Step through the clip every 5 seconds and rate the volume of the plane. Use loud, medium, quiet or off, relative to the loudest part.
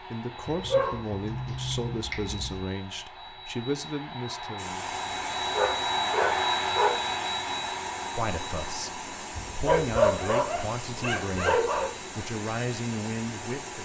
medium, loud, quiet.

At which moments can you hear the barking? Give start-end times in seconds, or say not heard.
0.5-2.6, 5.5-7.0, 9.3-11.9.